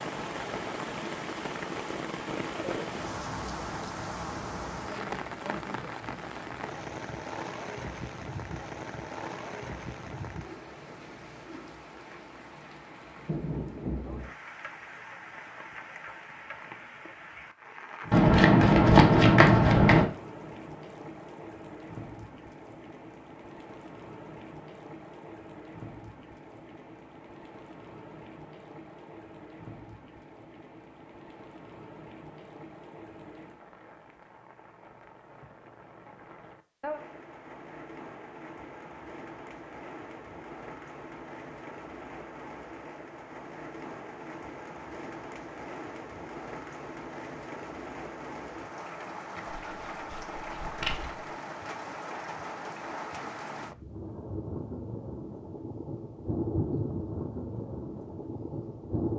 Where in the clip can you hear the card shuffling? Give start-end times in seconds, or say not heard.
18.1-20.1, 49.5-51.2.